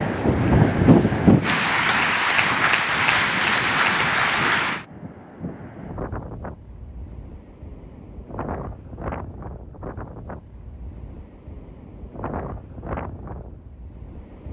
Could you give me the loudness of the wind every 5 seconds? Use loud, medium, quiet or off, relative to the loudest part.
loud, quiet, quiet.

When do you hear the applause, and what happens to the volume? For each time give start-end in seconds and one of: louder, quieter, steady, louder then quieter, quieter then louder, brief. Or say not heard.
0.0-4.8 louder.